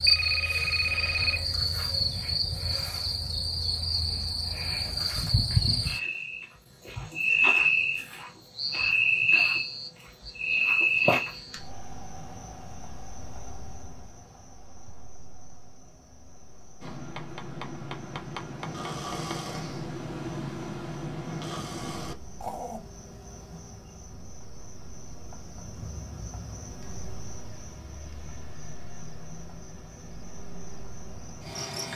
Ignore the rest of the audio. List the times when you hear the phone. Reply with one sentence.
The phone can be heard from 0.1 to 1.5 s.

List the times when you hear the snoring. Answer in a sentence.
You can hear the snoring from 16.8 to 22.8 s.